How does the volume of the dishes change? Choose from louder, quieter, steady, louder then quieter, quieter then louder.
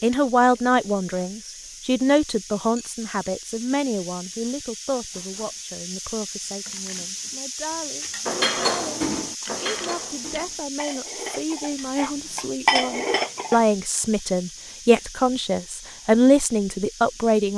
quieter then louder.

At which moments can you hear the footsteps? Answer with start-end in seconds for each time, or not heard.
not heard.